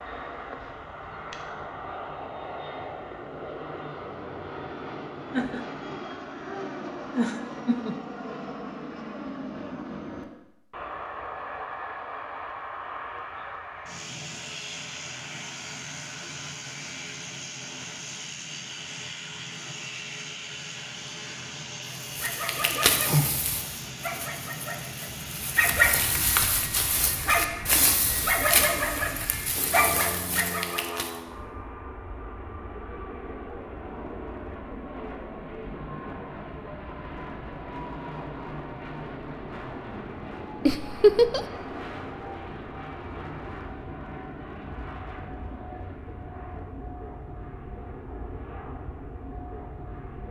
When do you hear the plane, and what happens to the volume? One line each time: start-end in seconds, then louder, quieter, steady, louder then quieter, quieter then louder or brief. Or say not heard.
0.0-50.2 steady.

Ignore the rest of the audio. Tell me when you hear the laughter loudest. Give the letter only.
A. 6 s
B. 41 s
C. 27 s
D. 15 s
B.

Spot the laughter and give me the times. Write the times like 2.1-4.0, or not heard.
5.3-8.0, 40.6-41.5.